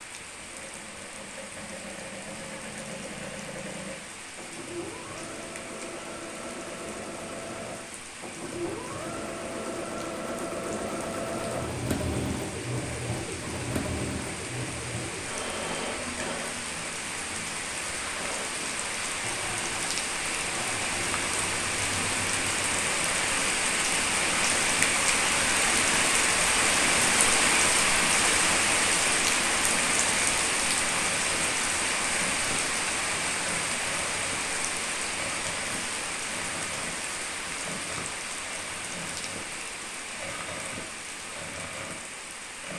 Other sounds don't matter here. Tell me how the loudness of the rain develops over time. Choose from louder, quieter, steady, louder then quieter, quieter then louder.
louder then quieter.